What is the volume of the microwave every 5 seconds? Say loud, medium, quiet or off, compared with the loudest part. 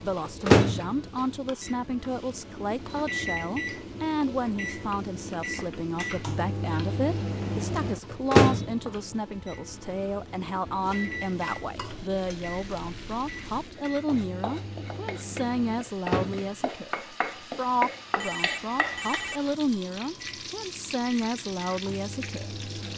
loud, loud, quiet, medium, quiet.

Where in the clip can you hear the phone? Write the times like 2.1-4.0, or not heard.
18.1-19.4.